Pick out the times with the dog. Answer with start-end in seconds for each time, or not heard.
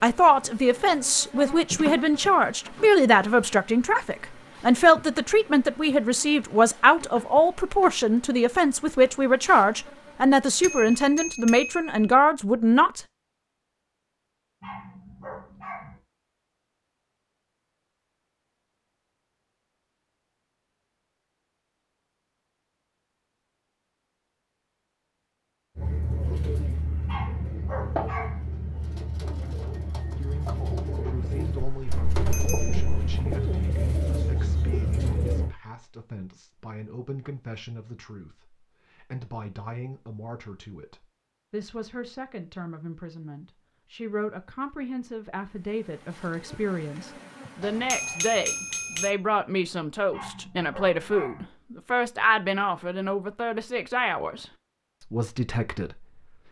14.6-16.0, 27.1-28.4, 50.1-51.5.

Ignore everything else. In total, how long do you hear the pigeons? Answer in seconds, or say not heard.
10 s.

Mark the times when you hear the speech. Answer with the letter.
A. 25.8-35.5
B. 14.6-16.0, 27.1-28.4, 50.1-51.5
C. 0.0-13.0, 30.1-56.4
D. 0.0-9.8
C.